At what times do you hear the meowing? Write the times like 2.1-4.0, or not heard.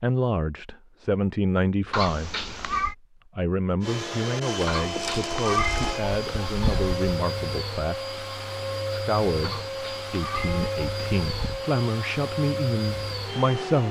1.9-3.0, 4.7-7.2, 9.4-11.7.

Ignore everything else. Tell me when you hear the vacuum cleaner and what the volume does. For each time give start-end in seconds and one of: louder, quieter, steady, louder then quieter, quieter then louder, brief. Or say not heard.
3.8-13.8 steady.